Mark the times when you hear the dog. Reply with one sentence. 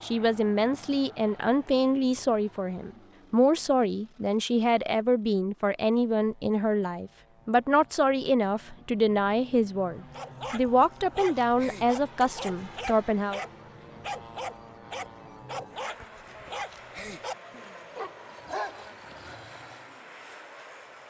The dog can be heard from 10.1 to 19.9 s.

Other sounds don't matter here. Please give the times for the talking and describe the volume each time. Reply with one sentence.
The talking can be heard from 0.0 to 13.4 s, at a steady volume.